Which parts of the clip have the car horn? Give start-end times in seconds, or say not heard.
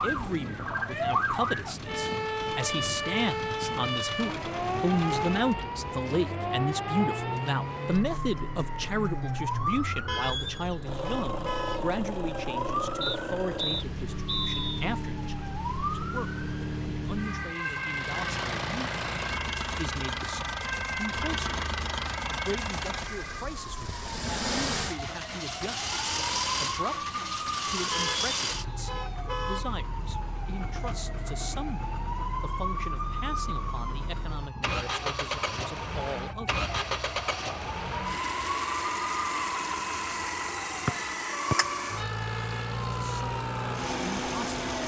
10.1-11.9, 27.9-29.8.